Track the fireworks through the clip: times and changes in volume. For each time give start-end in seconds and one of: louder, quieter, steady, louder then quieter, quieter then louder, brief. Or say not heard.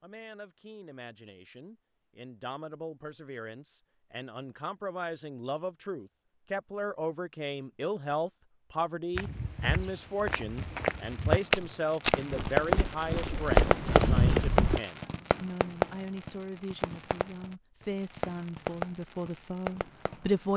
10.6-20.5 quieter.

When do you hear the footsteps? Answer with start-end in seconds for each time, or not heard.
9.2-14.8.